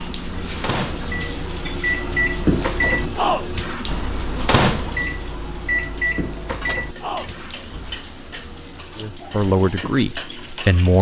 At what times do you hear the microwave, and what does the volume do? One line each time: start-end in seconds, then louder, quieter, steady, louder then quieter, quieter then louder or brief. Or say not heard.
0.0-8.0 louder then quieter.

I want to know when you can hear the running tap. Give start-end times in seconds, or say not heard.
0.0-10.8.